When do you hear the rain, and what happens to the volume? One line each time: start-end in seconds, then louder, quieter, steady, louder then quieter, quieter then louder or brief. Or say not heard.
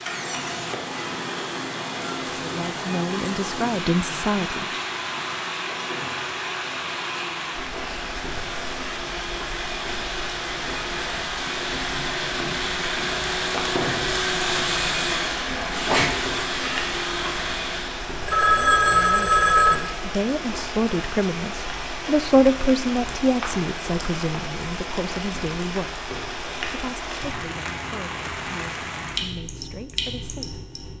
0.0-30.9 steady.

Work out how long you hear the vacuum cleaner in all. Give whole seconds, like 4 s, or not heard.
18 s.